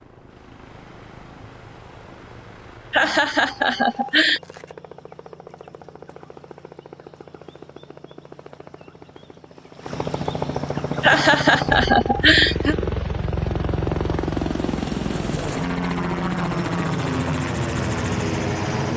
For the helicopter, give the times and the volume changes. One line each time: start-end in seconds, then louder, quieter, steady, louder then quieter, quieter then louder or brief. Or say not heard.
0.0-18.9 louder.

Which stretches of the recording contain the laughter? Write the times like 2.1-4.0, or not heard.
2.9-4.4, 11.0-12.8.